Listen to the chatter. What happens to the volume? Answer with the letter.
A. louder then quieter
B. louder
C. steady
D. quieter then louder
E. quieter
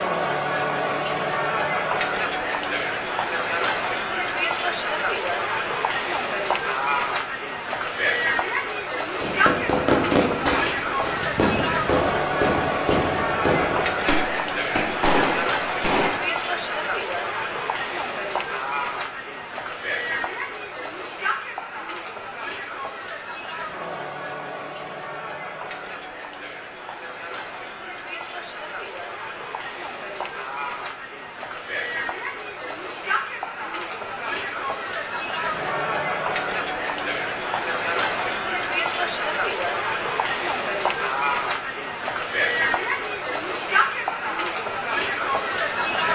D.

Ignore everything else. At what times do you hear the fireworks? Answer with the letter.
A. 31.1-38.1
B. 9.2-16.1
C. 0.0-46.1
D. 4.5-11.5
B.